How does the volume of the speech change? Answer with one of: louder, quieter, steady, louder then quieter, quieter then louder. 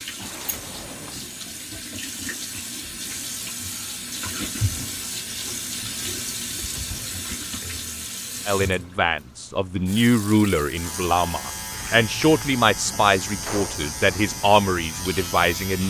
steady.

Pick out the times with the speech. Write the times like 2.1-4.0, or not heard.
8.4-15.8.